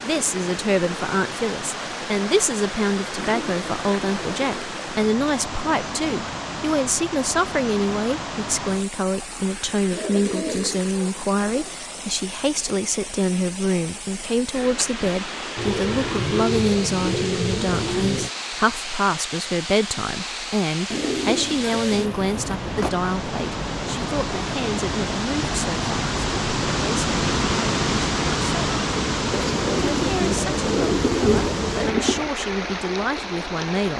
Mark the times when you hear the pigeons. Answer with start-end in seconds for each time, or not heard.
3.1-4.7, 9.9-11.8, 15.6-18.3, 20.9-22.9, 29.3-32.3.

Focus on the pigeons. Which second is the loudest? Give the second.
31 s.